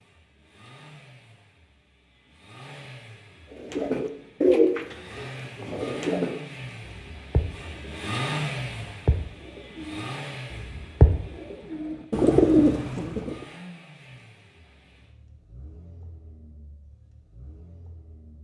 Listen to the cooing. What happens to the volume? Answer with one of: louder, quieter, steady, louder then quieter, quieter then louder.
quieter then louder.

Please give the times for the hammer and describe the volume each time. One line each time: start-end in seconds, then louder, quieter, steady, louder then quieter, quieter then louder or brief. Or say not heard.
not heard.